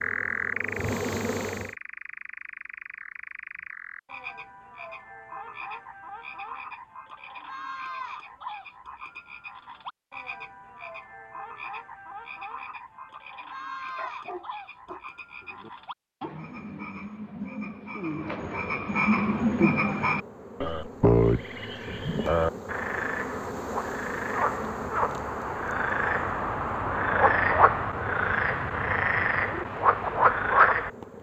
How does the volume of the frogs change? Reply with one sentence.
The loudness of the frogs goes up.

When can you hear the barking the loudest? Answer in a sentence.
The volume of the barking peaks at 14 seconds.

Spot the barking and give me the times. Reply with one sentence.
You can hear the barking from 13.9 to 15.7 s.